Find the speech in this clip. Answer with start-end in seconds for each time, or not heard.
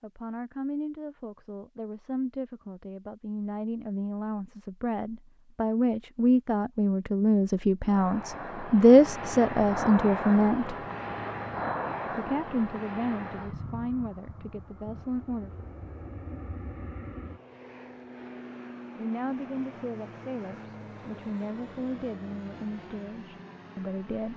0.0-10.8, 12.2-15.7, 18.9-24.3.